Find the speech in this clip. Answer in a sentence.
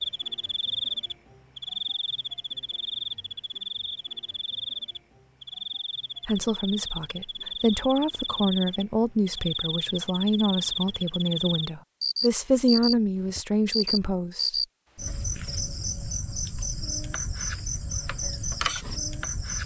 The speech can be heard from 6.2 to 14.6 s.